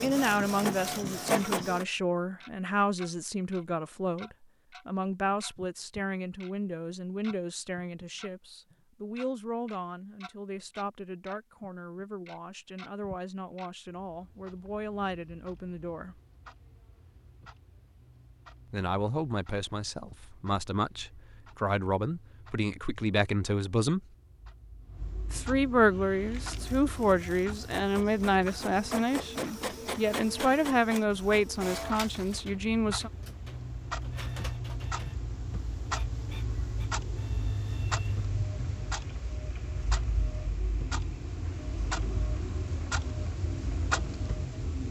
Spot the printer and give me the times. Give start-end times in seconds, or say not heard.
0.0-1.9, 25.9-44.6.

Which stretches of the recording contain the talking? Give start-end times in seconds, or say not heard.
0.0-16.2, 18.7-24.0, 25.3-33.1.